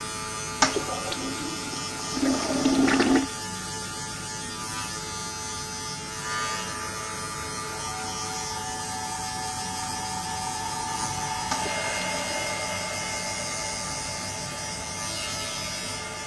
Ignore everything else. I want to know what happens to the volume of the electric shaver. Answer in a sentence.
The loudness of the electric shaver stays about the same.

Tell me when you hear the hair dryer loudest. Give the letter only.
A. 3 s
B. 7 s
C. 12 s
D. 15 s
C.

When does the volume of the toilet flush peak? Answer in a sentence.
The volume of the toilet flush peaks at 3 seconds.